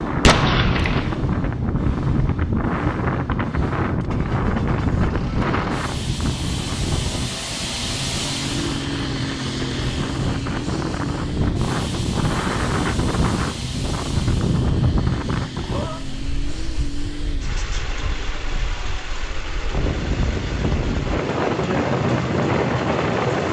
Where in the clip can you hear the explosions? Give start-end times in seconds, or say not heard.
0.2-1.1.